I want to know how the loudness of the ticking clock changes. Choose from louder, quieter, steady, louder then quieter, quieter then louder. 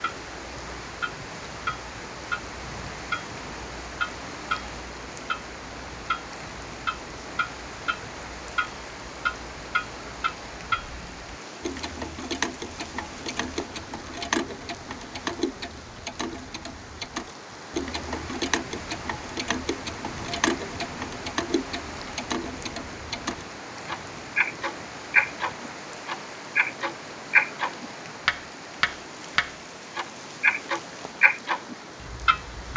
louder.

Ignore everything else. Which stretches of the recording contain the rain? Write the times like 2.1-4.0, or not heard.
0.0-32.7.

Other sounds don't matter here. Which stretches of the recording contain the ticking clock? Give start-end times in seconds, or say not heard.
0.0-32.7.